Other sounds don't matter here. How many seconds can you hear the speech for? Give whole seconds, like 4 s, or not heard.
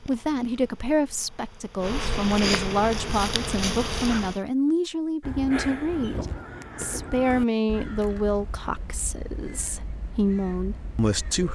11 s.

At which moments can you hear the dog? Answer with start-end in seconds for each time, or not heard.
not heard.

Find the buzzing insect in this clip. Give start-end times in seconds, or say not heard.
0.0-4.4.